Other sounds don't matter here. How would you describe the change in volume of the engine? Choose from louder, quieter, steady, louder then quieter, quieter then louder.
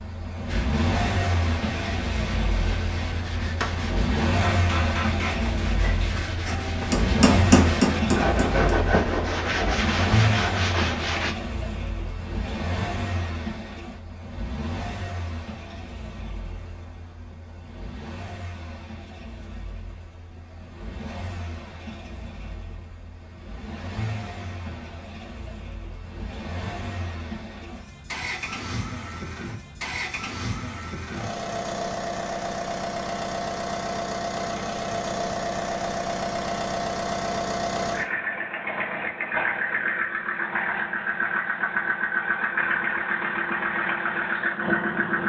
quieter then louder.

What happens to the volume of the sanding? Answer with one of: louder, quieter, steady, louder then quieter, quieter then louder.
louder.